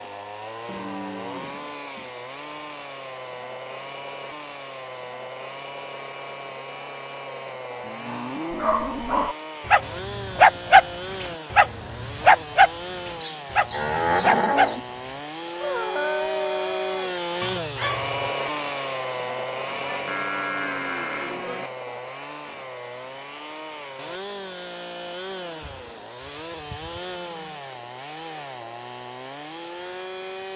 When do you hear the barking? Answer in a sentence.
You can hear the barking from 8.5 to 18.3 s.